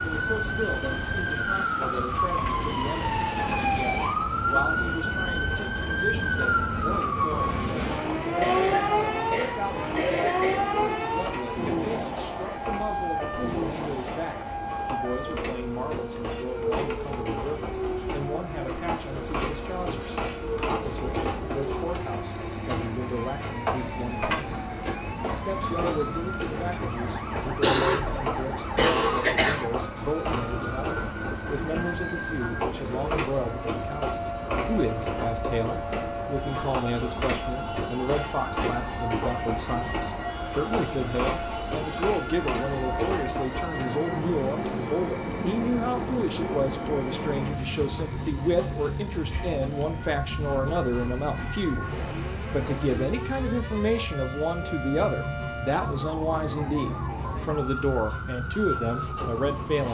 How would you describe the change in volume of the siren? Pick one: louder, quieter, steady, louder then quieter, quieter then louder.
quieter.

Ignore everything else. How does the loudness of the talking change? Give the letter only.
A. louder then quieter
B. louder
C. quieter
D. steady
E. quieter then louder
B.